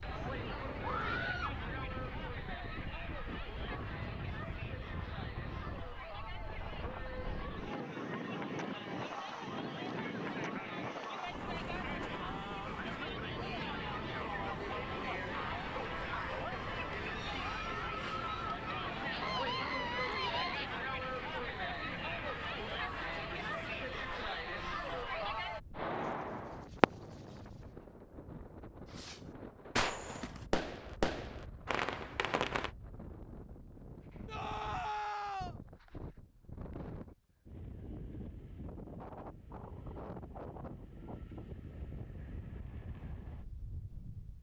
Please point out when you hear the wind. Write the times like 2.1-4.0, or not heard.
0.0-44.3.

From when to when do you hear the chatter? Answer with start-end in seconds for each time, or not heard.
0.0-25.6.